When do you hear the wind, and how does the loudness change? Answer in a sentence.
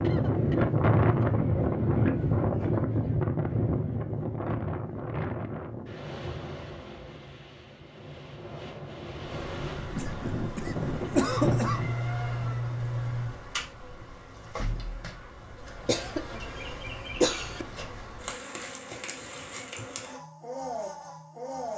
The wind can be heard from 0.0 to 11.9 s, getting quieter then louder.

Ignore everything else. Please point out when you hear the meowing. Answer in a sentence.
You can hear the meowing from 11.4 to 13.3 s.